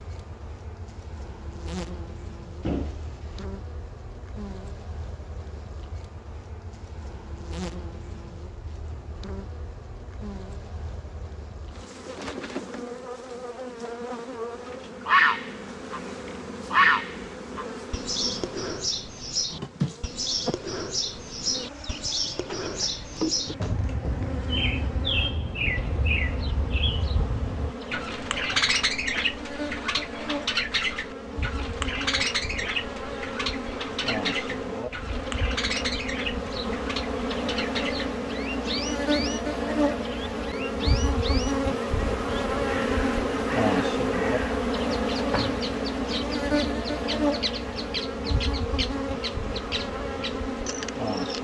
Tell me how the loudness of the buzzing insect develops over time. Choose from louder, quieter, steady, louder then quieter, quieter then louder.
louder.